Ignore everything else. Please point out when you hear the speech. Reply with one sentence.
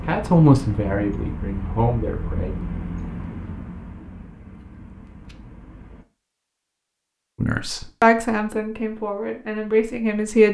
The speech can be heard from 0.0 to 2.5 s and from 7.4 to 10.5 s.